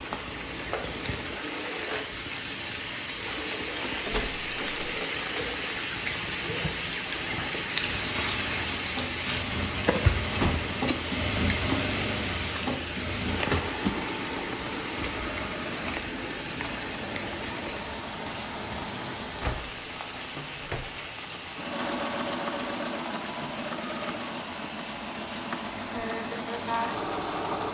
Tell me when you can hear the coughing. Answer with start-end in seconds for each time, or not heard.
not heard.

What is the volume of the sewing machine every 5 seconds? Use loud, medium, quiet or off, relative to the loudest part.
medium, medium, loud, medium, loud, loud.